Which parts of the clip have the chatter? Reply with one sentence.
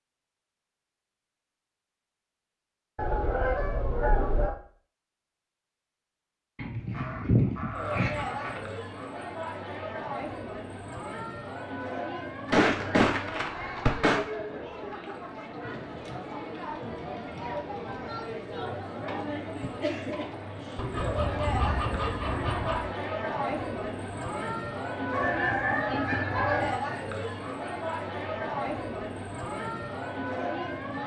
The chatter can be heard from 7.7 to 31.0 s.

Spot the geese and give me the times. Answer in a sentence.
The geese can be heard from 3.0 to 4.5 s, from 6.5 to 8.6 s, from 12.4 to 14.2 s, from 20.8 to 22.8 s and from 25.1 to 26.8 s.